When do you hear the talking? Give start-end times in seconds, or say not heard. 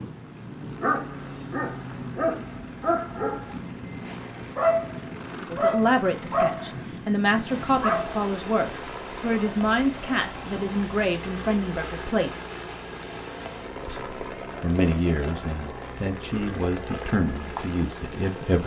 5.5-12.3, 13.8-18.6.